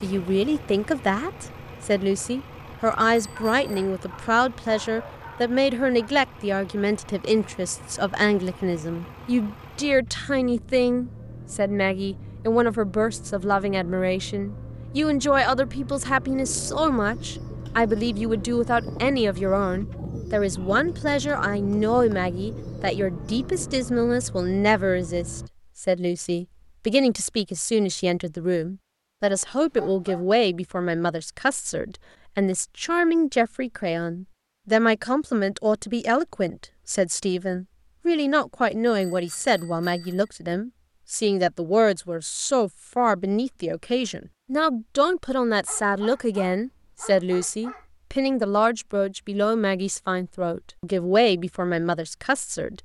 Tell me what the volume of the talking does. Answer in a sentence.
The loudness of the talking stays about the same.